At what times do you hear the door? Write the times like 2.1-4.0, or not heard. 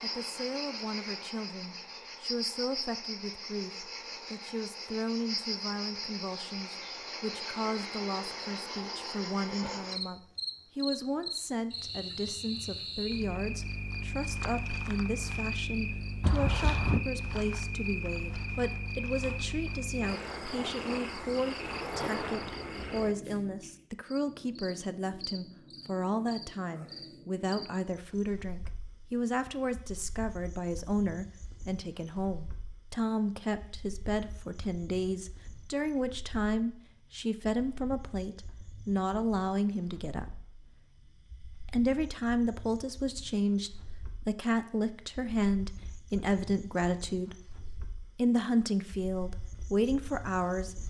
16.2-17.0.